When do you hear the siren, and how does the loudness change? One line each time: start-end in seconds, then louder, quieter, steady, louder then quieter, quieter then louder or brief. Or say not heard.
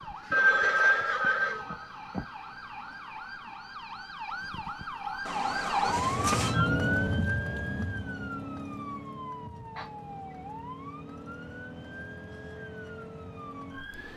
0.0-14.1 louder then quieter.